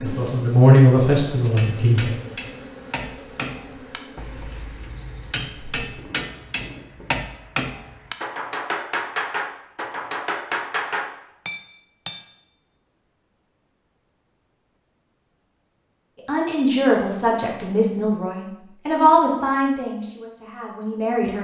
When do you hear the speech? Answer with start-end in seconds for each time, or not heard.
0.0-2.1, 16.1-21.3.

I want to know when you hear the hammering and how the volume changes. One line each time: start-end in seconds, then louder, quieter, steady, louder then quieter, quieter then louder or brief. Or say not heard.
1.5-12.3 louder.